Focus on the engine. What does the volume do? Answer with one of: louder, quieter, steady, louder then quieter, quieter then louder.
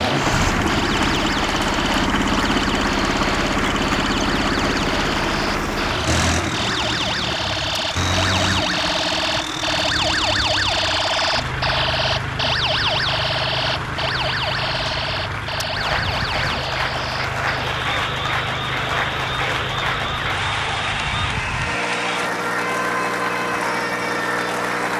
quieter.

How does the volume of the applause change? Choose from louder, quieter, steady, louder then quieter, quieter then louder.
quieter then louder.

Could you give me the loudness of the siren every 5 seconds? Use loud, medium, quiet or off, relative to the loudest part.
medium, loud, loud, medium, medium.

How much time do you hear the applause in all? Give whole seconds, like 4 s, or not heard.
25 s.